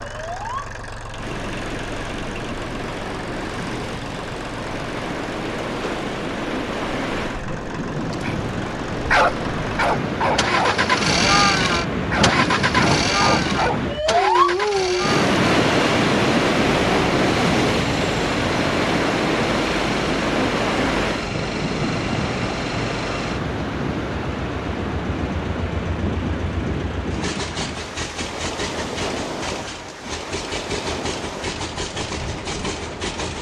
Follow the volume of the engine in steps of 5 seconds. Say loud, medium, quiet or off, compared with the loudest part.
quiet, quiet, loud, medium, medium, medium, medium.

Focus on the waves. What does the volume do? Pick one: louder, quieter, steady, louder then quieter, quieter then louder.
louder then quieter.